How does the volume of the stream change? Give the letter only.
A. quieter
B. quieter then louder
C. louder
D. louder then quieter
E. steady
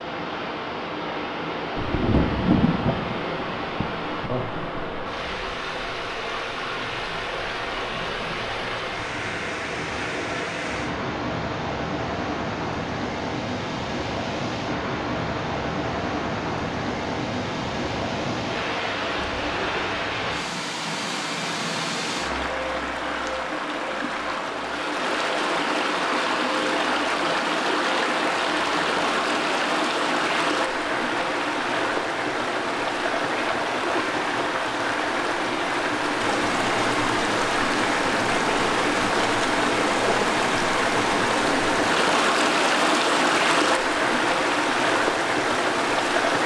C.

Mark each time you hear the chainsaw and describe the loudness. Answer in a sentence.
The chainsaw can't be heard in this clip.